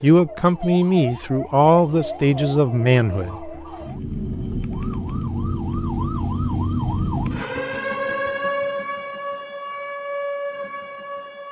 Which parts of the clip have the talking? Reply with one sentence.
You can hear the talking from 0.0 to 3.5 s.